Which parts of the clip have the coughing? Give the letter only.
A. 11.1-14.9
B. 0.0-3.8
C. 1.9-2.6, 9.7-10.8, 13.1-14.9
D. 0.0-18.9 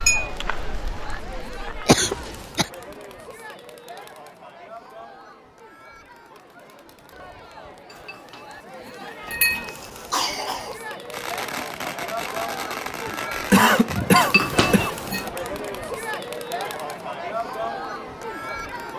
C.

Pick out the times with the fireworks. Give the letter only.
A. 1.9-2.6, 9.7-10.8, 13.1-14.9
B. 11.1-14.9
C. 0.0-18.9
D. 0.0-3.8
B.